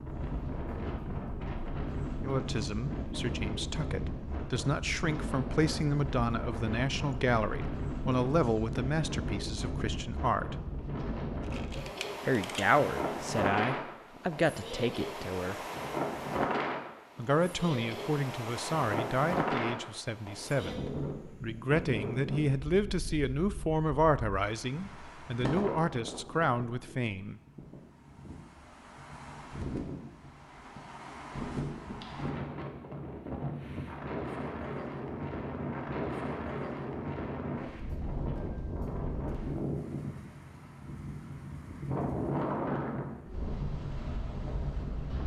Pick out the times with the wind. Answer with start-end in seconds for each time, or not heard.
0.0-45.2.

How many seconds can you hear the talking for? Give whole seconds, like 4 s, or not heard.
22 s.